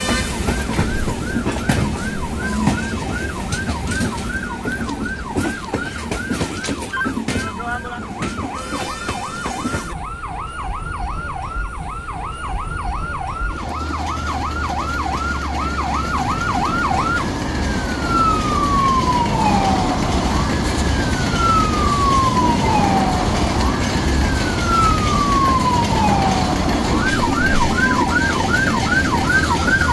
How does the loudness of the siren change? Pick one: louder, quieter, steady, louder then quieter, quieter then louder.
louder.